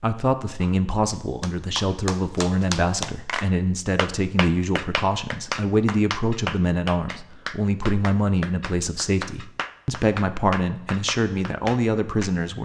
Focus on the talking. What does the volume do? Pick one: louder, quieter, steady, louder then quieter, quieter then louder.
steady.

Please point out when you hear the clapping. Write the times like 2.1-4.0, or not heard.
0.6-12.3.